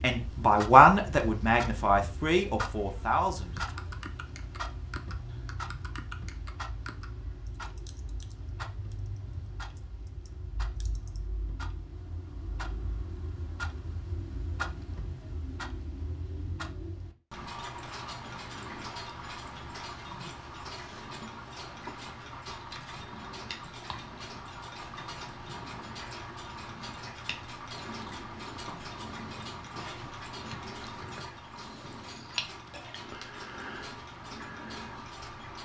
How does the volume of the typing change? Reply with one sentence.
The loudness of the typing goes down.